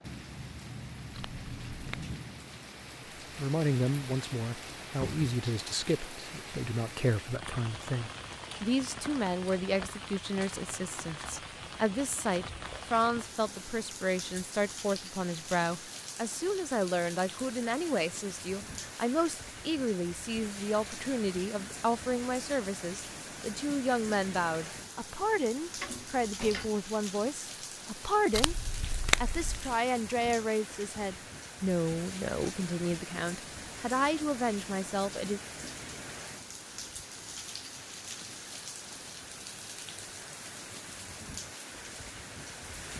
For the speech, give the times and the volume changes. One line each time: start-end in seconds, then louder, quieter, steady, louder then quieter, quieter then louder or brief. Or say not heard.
3.4-35.4 steady.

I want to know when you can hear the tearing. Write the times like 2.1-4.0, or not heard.
1.1-2.1, 28.3-29.8.